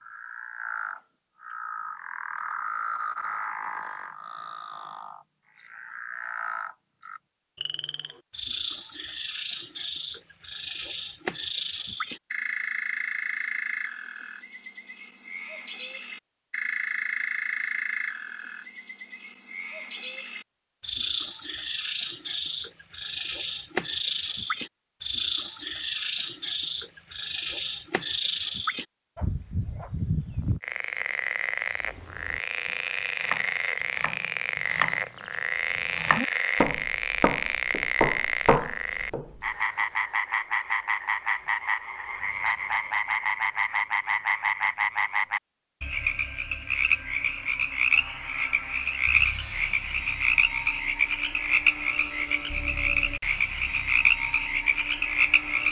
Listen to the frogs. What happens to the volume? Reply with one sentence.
The volume of the frogs goes up.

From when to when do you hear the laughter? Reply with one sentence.
You can't hear the laughter here.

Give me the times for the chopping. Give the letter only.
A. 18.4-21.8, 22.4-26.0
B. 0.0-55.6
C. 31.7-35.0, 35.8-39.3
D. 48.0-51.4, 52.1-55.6
C.